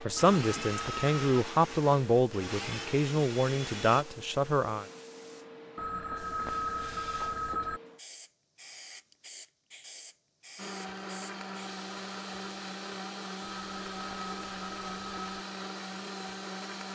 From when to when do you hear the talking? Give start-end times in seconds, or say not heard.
0.0-4.8.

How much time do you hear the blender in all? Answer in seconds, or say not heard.
10 s.